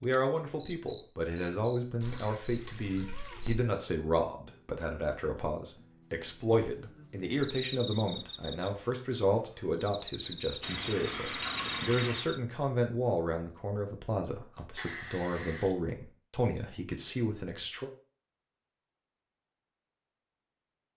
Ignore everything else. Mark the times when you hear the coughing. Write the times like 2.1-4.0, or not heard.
not heard.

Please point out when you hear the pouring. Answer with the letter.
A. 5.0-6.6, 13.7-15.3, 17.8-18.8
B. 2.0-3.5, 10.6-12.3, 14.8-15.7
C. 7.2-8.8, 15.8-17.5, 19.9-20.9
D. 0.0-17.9
B.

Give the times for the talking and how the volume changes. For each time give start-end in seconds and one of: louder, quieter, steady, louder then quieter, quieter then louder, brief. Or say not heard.
0.0-17.9 steady.